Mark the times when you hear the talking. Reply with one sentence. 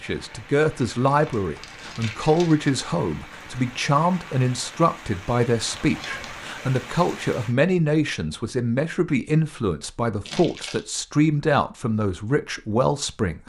The talking can be heard from 0.0 to 13.4 s.